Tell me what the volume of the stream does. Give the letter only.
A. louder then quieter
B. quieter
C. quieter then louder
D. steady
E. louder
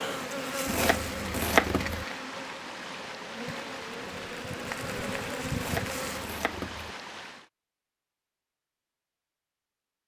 D.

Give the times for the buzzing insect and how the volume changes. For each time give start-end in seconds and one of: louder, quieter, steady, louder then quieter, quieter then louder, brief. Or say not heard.
0.0-6.2 quieter then louder.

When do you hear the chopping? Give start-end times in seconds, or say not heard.
0.7-2.0, 5.5-7.0.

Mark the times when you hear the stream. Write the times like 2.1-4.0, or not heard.
0.0-7.5.